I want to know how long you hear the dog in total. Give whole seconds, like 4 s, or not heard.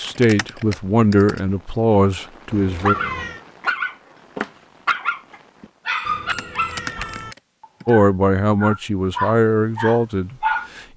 8 s.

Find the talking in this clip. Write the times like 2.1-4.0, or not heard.
0.0-3.0, 7.8-10.8.